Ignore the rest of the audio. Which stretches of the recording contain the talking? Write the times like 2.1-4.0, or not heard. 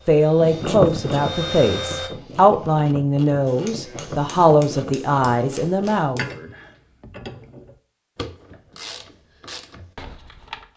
0.1-6.2.